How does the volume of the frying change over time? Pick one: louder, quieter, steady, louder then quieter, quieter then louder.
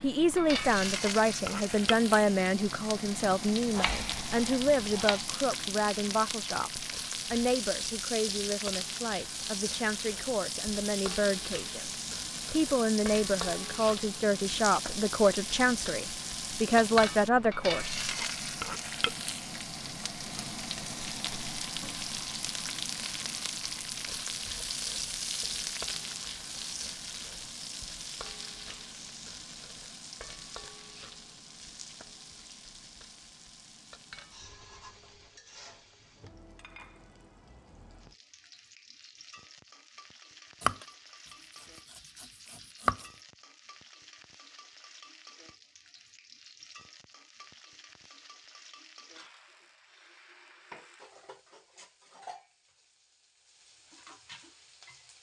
quieter.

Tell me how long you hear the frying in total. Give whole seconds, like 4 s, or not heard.
55 s.